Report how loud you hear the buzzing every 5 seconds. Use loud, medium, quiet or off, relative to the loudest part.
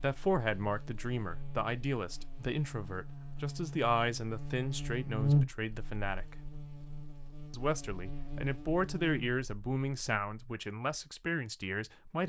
medium, loud, off.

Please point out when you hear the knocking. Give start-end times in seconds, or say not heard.
not heard.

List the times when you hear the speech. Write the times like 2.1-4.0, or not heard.
0.0-6.5, 7.5-12.2.